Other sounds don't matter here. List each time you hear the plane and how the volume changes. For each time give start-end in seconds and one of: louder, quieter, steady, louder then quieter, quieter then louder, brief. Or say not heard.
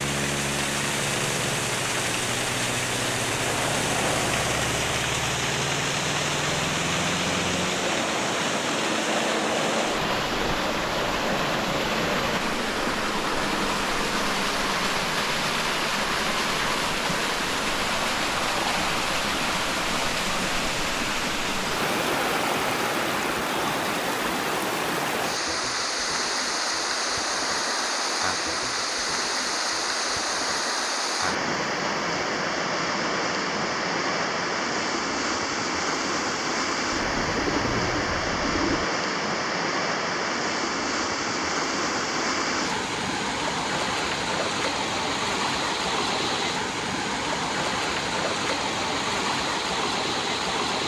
0.0-23.4 steady.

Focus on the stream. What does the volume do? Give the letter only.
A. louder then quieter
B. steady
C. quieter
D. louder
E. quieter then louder
B.